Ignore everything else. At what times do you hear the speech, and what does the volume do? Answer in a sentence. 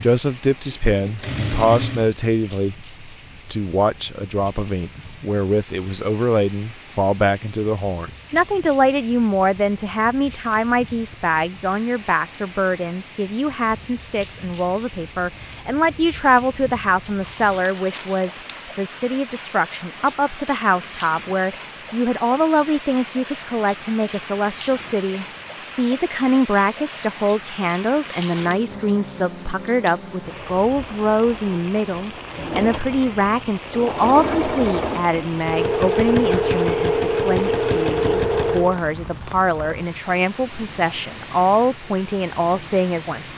The speech can be heard from 0.0 to 43.3 s, at a steady volume.